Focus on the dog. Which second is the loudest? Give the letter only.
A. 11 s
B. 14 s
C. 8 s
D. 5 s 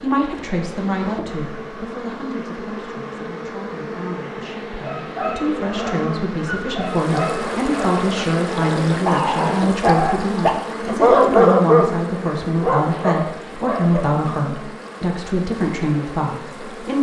A.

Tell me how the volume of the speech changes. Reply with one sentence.
The volume of the speech goes up.